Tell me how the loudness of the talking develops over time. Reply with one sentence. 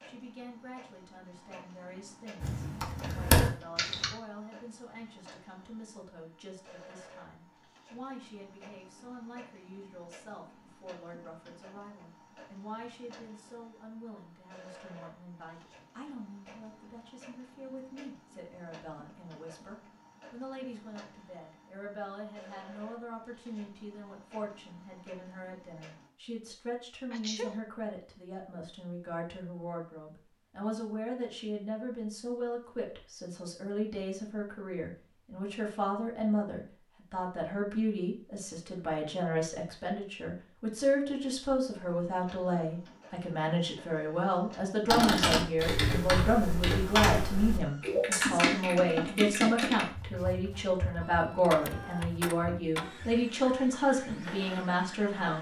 The volume of the talking goes up.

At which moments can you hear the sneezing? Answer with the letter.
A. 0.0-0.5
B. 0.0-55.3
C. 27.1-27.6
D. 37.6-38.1
C.